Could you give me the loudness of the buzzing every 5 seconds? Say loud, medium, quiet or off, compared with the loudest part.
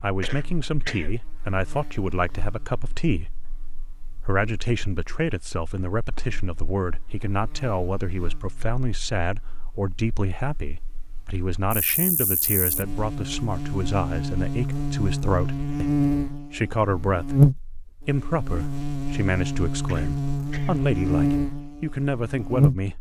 quiet, quiet, medium, loud, loud.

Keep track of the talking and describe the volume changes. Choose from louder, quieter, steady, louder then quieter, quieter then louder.
steady.